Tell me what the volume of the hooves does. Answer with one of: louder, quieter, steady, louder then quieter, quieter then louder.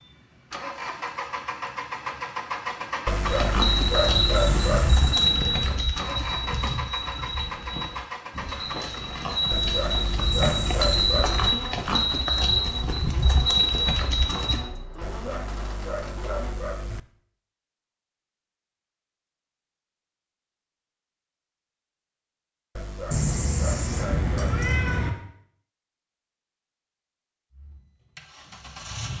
quieter then louder.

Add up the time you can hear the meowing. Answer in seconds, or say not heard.
4 s.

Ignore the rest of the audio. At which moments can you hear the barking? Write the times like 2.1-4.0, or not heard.
3.0-5.0, 9.5-11.5, 15.0-17.0, 22.8-24.6.